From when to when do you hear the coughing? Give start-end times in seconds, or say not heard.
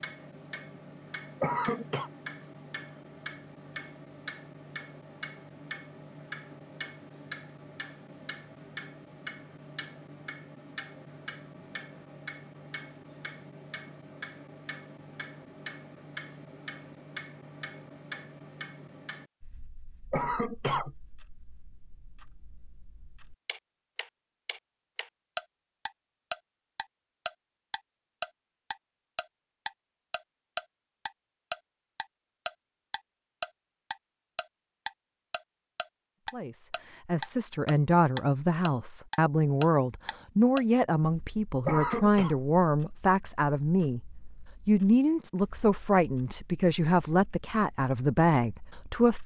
1.4-2.1, 20.1-20.9, 41.6-42.4.